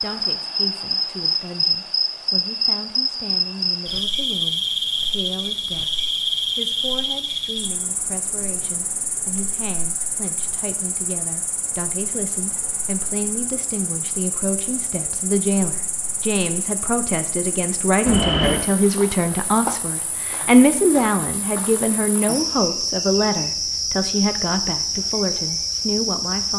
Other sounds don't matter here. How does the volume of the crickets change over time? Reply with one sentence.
The loudness of the crickets goes down, then up.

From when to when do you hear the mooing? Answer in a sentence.
The mooing can't be heard in this clip.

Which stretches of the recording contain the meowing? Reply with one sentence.
The meowing can be heard from 18.1 to 18.6 s.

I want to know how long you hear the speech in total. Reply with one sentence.
You can hear the speech for 26 seconds altogether.